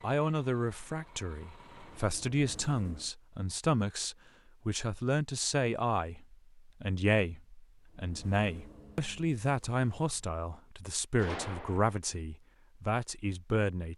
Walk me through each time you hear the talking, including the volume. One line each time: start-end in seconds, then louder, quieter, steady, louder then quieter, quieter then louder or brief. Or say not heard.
0.0-13.9 steady.